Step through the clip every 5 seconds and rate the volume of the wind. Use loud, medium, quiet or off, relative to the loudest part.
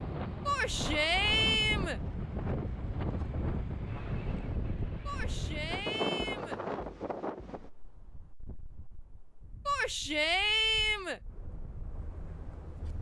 loud, loud, quiet.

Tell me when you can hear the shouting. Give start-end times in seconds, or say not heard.
0.5-2.0, 5.0-6.6, 9.7-11.2.